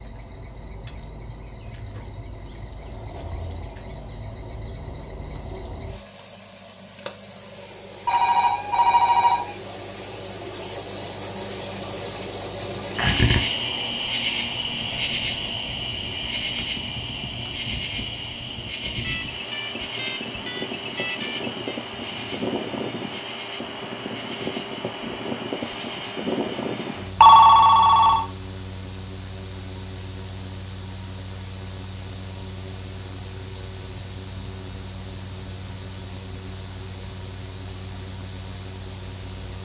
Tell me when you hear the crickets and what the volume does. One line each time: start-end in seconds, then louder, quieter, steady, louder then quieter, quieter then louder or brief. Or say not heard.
0.0-27.1 louder then quieter.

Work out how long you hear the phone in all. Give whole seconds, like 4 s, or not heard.
5 s.